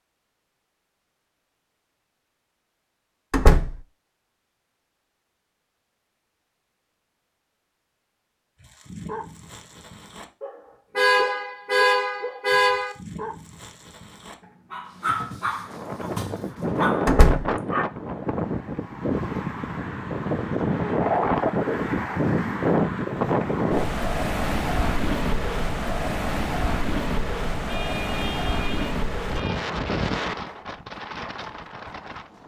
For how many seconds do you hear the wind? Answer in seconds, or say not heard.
17 s.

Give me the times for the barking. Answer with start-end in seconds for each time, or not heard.
8.6-17.9.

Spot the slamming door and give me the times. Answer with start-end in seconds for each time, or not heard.
3.3-3.8, 17.1-17.5.